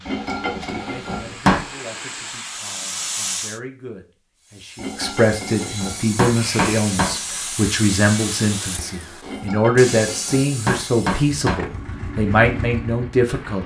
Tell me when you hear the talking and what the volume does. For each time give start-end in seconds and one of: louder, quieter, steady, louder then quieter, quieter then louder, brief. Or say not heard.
0.0-13.6 louder.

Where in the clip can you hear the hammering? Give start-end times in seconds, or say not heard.
0.1-1.6, 4.8-7.2, 9.2-11.6.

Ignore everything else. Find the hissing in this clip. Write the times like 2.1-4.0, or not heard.
0.0-3.6, 6.3-8.8.